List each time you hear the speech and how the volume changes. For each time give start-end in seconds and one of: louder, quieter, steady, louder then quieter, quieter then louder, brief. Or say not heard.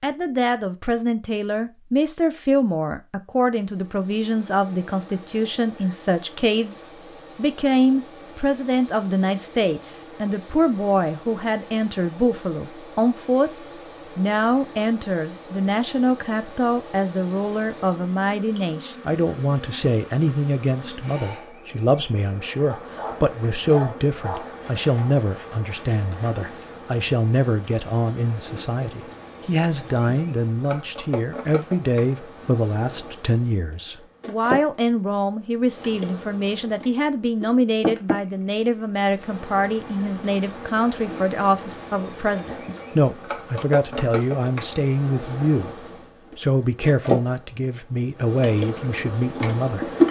0.0-50.0 steady.